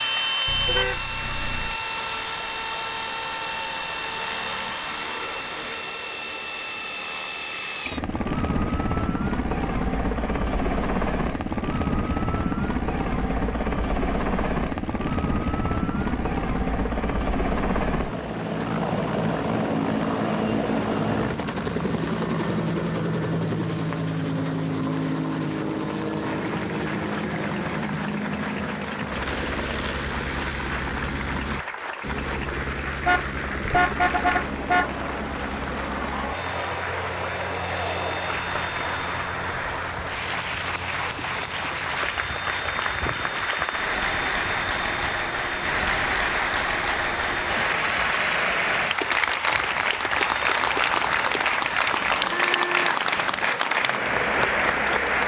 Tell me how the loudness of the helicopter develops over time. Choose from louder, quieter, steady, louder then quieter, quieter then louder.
quieter.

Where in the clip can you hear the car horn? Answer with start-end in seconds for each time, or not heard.
0.5-1.8, 33.0-34.9, 52.0-53.5.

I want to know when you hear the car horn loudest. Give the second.
34 s.